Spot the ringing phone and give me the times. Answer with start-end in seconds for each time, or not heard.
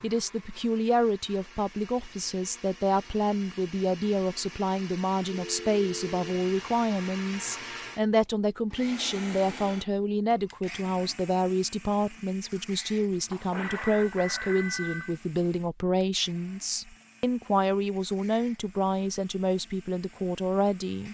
5.3-6.2, 13.3-15.2.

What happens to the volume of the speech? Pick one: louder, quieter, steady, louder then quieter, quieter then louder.
steady.